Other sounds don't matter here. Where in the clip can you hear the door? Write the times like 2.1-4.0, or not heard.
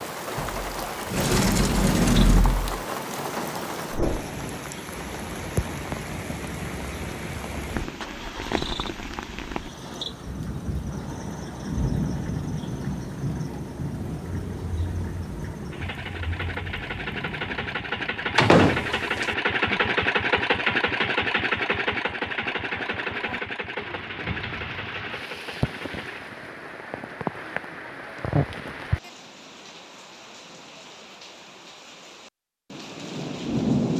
0.3-2.8, 18.4-19.2.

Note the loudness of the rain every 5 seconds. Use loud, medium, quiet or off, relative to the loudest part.
loud, loud, loud, medium, medium, loud, loud.